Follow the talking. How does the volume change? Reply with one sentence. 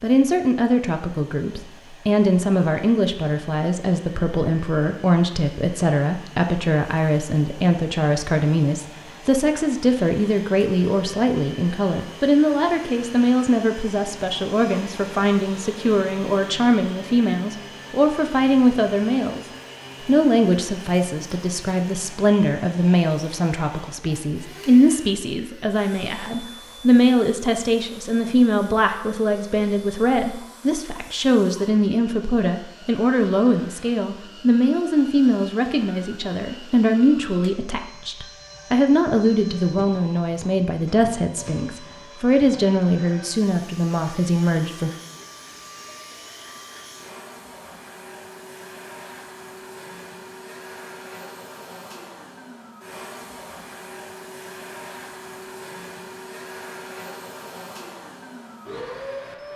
The volume of the talking stays about the same.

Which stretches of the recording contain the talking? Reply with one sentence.
You can hear the talking from 0.0 to 19.4 s and from 20.1 to 44.9 s.